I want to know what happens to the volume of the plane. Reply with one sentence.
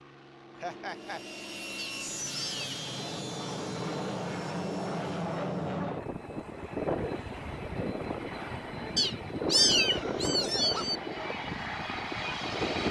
The loudness of the plane goes up.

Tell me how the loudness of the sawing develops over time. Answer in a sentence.
The loudness of the sawing goes down.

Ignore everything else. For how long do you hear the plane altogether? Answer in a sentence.
You can hear the plane for 13 seconds altogether.